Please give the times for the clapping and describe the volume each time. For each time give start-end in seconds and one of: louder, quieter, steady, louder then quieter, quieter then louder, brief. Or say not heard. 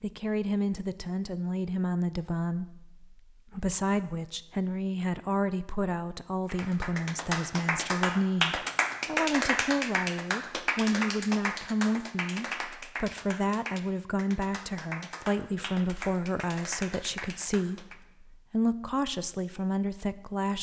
6.5-18.0 quieter.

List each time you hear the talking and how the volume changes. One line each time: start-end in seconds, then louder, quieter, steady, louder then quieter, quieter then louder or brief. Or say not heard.
0.0-20.5 steady.